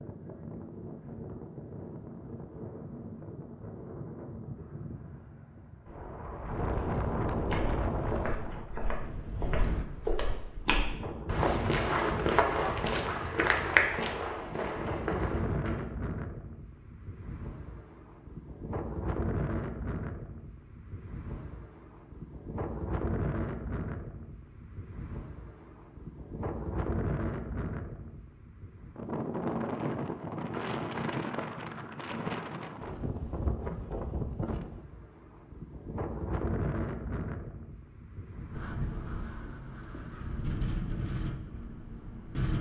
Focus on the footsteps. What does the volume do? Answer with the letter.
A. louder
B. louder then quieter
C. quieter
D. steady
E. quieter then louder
B.